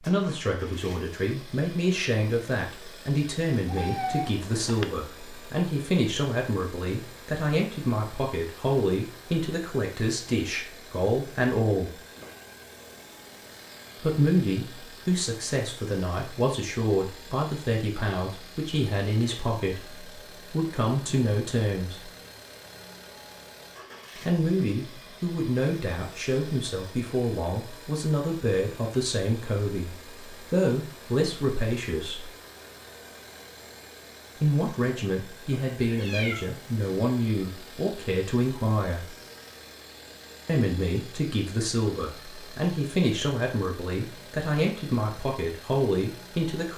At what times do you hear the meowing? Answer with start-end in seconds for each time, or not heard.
3.6-4.8, 35.8-37.0.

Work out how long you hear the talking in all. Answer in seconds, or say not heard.
39 s.